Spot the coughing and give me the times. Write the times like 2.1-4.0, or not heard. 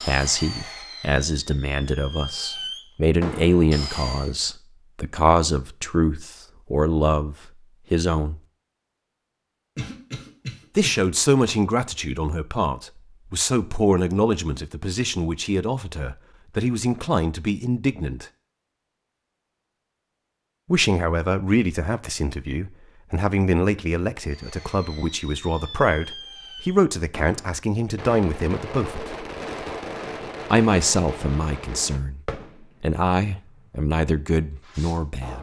9.8-10.9.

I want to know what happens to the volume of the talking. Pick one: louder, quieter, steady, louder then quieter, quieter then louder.
steady.